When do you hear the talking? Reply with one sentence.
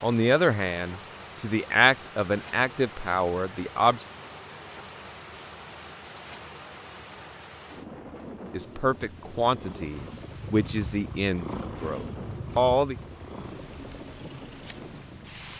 The talking can be heard from 0.0 to 4.0 s and from 8.5 to 12.9 s.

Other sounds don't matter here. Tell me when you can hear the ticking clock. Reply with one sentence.
The ticking clock can't be heard in this clip.